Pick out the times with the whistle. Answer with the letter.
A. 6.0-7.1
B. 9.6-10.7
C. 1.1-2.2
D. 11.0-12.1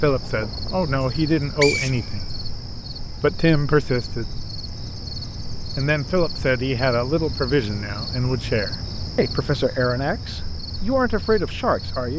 C.